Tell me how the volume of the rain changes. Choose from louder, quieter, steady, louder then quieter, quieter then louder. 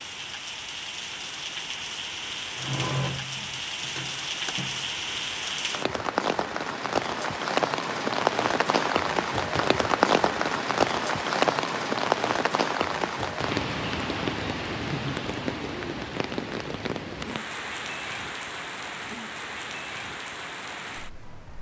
louder then quieter.